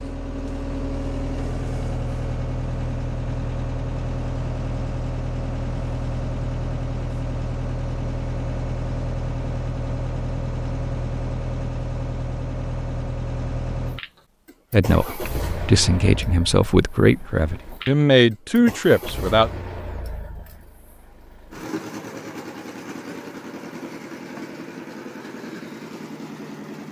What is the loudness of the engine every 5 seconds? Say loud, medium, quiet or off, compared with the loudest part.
loud, loud, loud, medium, medium, medium.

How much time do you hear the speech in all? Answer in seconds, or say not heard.
5 s.